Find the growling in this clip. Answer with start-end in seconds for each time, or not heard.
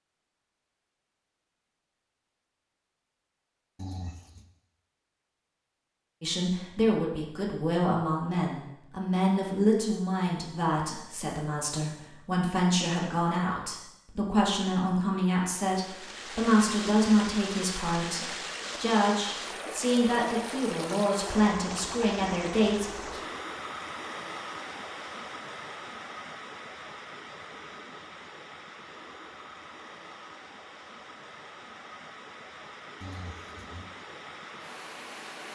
3.8-4.5, 33.0-33.9.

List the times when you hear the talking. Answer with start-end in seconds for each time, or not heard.
6.2-23.2.